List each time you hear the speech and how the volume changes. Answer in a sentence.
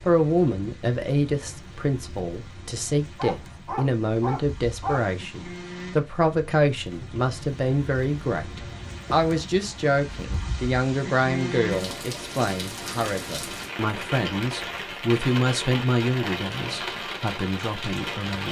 The speech can be heard from 0.1 to 18.4 s, at a steady volume.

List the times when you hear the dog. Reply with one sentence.
You can hear the dog from 3.1 to 5.2 s.